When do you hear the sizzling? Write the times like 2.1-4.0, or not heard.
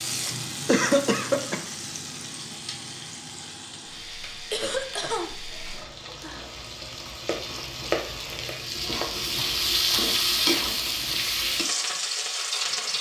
0.0-12.9.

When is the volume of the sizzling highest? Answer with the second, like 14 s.
10 s.